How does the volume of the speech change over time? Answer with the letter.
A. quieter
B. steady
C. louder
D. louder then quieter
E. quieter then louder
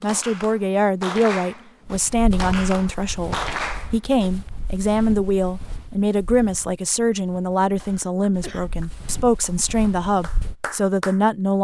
B.